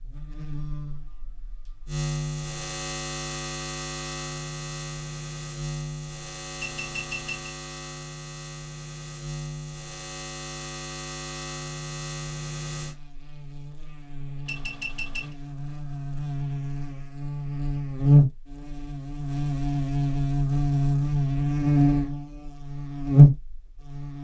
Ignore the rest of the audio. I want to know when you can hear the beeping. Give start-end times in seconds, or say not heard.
6.5-7.5, 14.4-15.3.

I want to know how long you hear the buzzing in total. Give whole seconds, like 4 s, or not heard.
24 s.